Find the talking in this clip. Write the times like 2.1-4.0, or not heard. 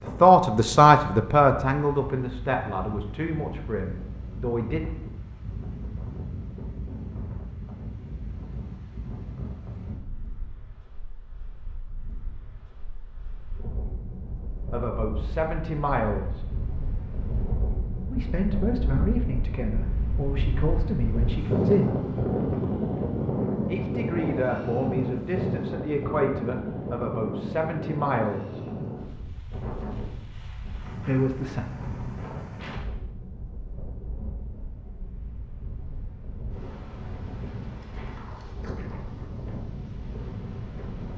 0.0-4.8, 14.7-16.4, 18.1-22.1, 23.6-28.6, 31.0-31.6.